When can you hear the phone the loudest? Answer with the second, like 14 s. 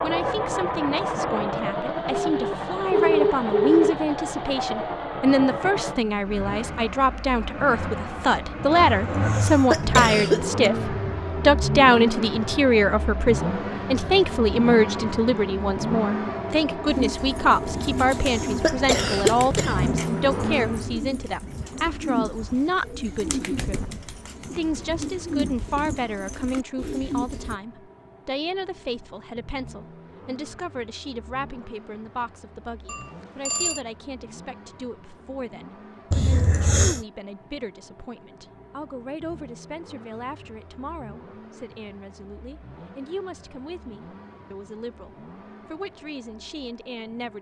3 s.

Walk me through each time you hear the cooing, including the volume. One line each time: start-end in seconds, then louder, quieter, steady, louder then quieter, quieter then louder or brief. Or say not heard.
16.9-27.6 steady.